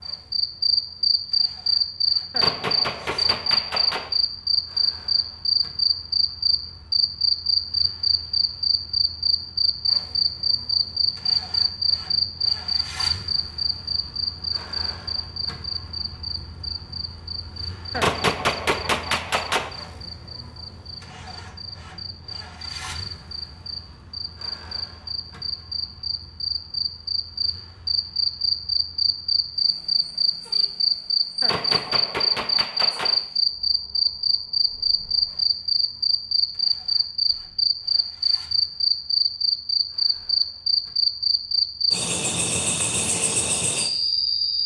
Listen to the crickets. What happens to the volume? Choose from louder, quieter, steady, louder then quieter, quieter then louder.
quieter then louder.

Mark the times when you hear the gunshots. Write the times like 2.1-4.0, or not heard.
2.3-4.1, 17.9-19.7, 31.4-33.2.